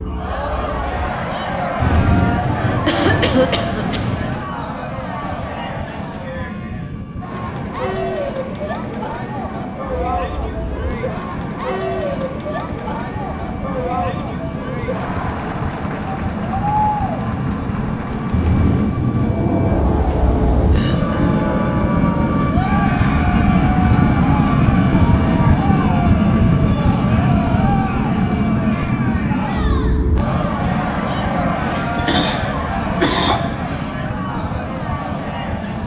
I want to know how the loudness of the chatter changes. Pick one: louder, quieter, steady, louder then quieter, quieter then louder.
steady.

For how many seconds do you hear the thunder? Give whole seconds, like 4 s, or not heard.
5 s.